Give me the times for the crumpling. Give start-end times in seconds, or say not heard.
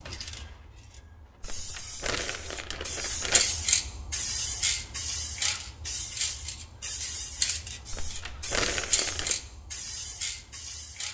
1.4-3.5, 7.9-9.3.